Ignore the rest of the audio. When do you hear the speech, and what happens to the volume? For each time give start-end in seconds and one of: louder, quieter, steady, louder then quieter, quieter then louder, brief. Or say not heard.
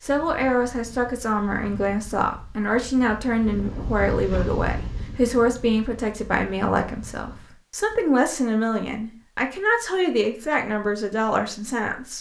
0.0-12.1 steady.